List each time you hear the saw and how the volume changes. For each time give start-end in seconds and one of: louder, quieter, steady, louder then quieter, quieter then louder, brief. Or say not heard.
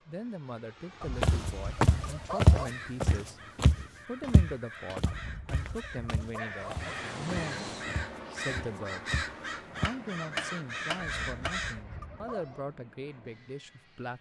not heard.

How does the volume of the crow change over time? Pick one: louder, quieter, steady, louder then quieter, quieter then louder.
louder.